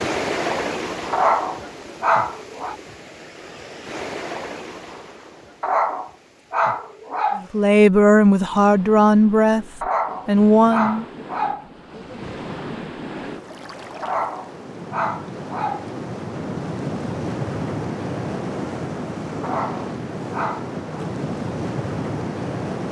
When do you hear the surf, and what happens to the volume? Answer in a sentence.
You can hear the surf from 0.0 to 22.8 s, getting quieter then louder.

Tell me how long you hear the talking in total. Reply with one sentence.
You can hear the talking for 4 seconds altogether.